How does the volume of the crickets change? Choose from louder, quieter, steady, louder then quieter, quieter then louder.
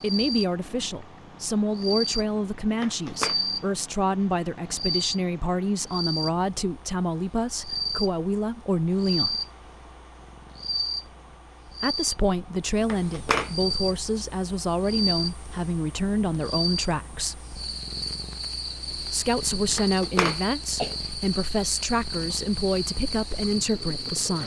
steady.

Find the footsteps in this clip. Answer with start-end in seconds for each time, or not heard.
not heard.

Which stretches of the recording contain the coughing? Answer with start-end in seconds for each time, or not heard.
2.7-3.4, 12.8-13.5, 19.8-20.9.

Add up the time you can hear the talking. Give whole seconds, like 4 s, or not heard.
20 s.